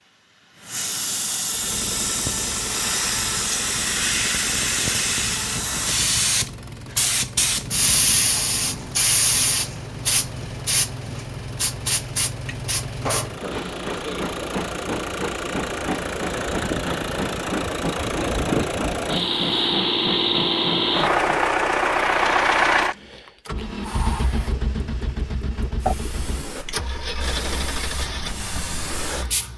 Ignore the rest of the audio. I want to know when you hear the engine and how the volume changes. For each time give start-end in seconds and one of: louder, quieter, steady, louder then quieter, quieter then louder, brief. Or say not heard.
1.5-29.5 louder then quieter.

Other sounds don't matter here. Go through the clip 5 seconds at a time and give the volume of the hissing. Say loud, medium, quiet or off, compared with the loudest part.
loud, loud, medium, medium, medium, medium.